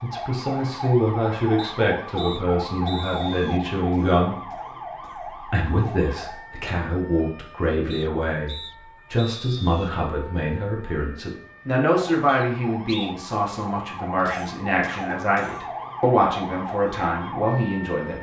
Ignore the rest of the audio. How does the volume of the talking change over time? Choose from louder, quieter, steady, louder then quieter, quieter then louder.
steady.